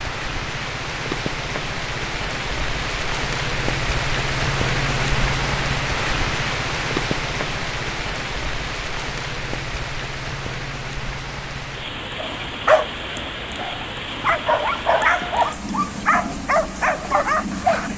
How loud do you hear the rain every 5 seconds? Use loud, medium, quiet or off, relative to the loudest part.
loud, loud, medium, medium.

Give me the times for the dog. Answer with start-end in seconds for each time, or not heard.
12.2-17.9.